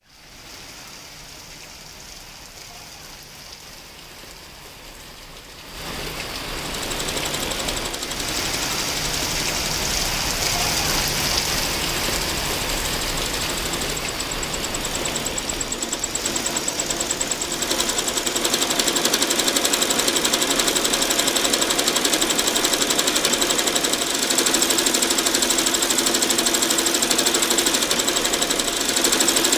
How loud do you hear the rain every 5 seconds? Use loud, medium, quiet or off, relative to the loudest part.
quiet, loud, loud, medium, quiet, quiet.